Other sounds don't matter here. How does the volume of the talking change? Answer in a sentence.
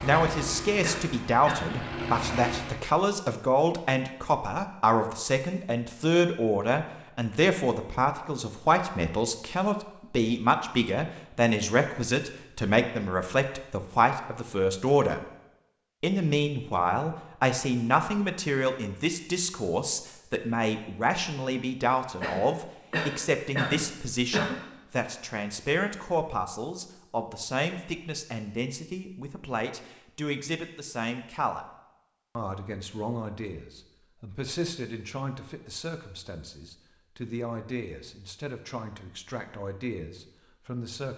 The loudness of the talking goes down.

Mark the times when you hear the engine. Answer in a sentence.
You can hear the engine from 0.0 to 2.9 s.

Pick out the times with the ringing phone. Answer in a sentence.
The ringing phone can't be heard in this clip.